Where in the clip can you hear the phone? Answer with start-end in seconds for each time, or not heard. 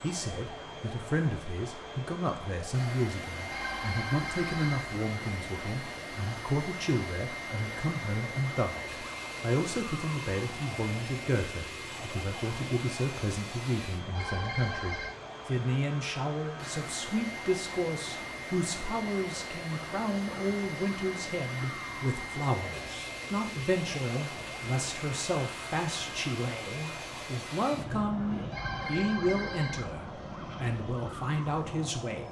3.5-4.9, 14.1-15.2, 28.5-29.9.